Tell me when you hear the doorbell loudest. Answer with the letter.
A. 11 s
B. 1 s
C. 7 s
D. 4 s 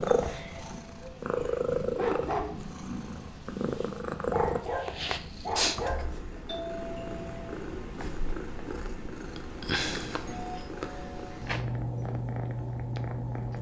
C.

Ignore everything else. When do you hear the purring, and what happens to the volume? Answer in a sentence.
You can hear the purring from 0.0 to 13.5 s, at a steady volume.